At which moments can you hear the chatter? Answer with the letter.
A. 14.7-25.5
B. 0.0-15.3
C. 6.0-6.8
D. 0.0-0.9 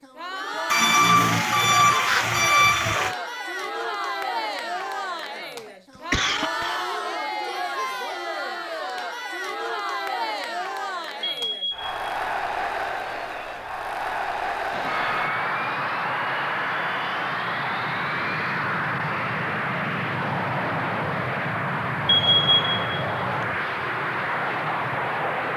B.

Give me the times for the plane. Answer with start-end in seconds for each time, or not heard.
14.7-25.5.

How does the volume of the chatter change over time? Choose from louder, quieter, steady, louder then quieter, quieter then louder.
steady.